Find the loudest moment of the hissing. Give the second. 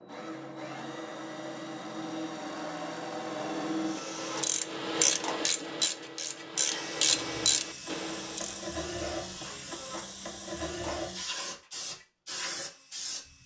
11 s.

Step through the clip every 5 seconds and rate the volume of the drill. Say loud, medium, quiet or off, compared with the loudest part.
loud, medium, quiet.